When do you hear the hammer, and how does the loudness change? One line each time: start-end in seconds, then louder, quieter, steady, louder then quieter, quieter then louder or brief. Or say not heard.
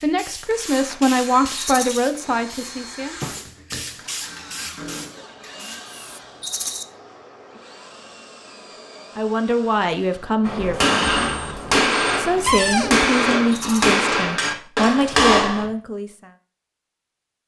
10.4-15.7 steady.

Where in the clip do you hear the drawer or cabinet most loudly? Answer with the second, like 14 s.
13 s.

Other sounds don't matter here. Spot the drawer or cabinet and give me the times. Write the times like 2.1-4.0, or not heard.
2.2-3.5, 12.4-13.0.